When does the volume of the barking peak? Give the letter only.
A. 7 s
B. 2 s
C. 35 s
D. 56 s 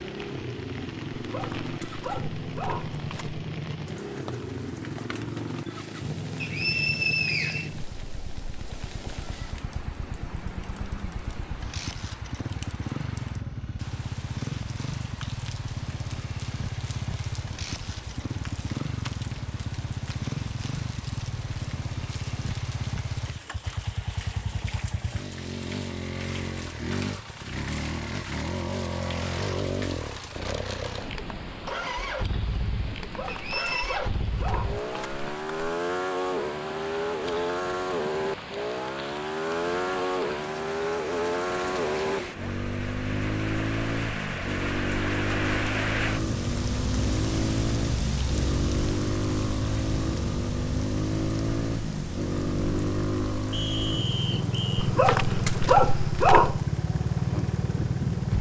D.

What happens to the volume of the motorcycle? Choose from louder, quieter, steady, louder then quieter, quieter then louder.
louder.